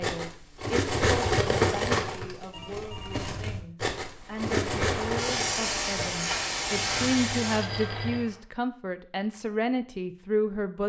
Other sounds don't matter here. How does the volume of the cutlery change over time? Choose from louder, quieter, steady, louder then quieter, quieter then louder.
quieter then louder.